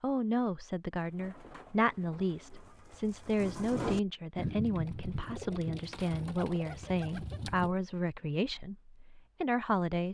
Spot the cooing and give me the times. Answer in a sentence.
You can hear the cooing from 0.9 to 7.8 s.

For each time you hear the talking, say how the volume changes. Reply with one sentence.
The talking can be heard from 0.0 to 10.0 s, at a steady volume.